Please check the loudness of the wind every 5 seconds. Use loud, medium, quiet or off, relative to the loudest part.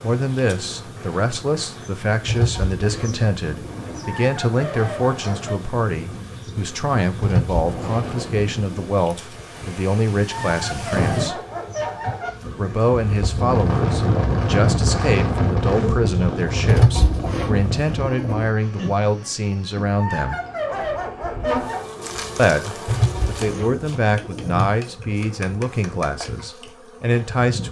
quiet, medium, loud, loud, off, off.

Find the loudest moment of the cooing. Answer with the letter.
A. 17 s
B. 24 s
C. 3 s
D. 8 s
A.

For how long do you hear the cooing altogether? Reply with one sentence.
You can hear the cooing for 7 seconds altogether.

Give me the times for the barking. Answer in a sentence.
You can hear the barking from 4.2 to 5.5 s, from 10.3 to 12.3 s and from 20.0 to 21.9 s.